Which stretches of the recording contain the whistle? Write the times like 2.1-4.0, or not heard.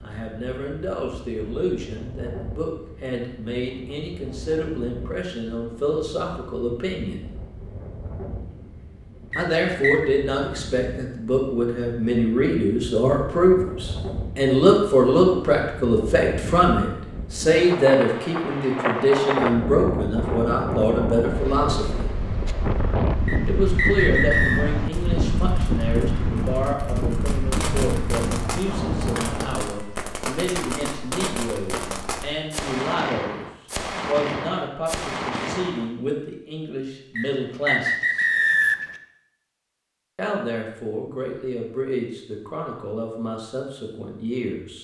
9.3-10.1, 23.2-24.6, 37.1-39.0.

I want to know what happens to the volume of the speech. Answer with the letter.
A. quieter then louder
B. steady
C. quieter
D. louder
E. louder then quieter
E.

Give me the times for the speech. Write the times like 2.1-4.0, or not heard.
0.0-7.3, 9.3-22.1, 23.4-33.5, 34.0-38.2, 40.1-44.7.